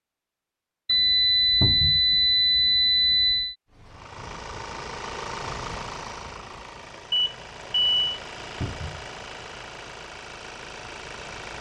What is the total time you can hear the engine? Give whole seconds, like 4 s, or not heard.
8 s.